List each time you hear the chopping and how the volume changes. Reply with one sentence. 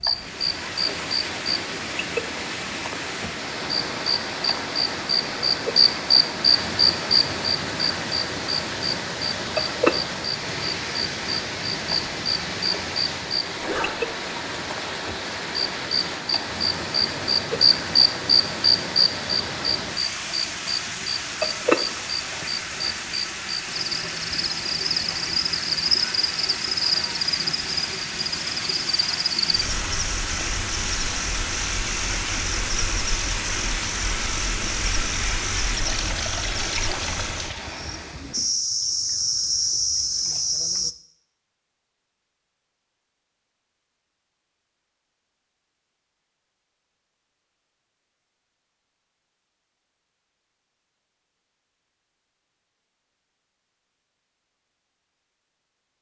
The chopping can't be heard in this clip.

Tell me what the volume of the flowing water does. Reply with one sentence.
The volume of the flowing water stays about the same.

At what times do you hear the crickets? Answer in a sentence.
The crickets can be heard from 0.0 to 41.0 s.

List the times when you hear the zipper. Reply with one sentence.
The zipper can be heard from 13.6 to 14.2 s.